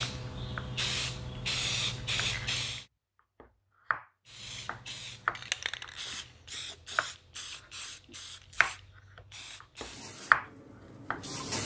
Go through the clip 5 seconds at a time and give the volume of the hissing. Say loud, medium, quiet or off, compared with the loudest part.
loud, medium, medium.